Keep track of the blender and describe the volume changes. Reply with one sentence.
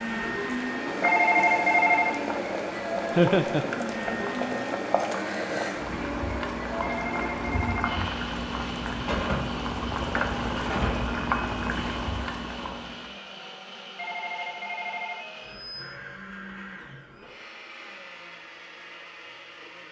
The volume of the blender goes down.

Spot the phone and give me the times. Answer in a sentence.
You can hear the phone from 1.0 to 2.2 s, from 6.8 to 8.1 s and from 13.9 to 15.8 s.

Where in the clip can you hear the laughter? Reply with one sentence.
You can hear the laughter from 3.1 to 3.6 s.